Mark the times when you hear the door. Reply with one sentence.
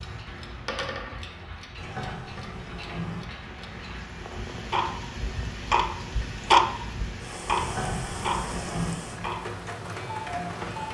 The door can be heard from 1.8 to 3.2 s and from 7.5 to 9.0 s.